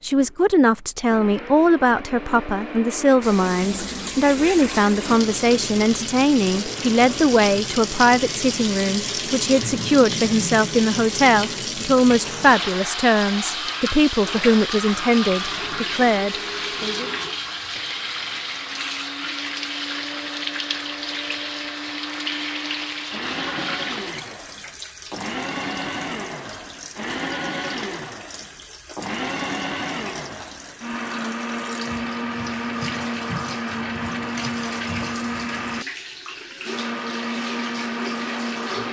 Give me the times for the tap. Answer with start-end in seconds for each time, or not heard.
3.2-38.8.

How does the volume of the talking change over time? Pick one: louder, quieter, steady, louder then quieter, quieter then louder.
steady.